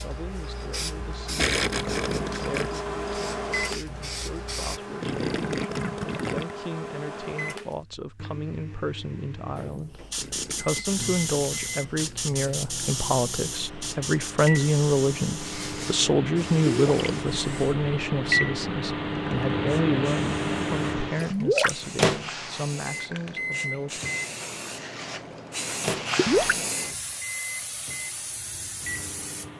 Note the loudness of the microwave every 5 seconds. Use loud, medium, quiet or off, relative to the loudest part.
medium, medium, medium, loud, loud, medium.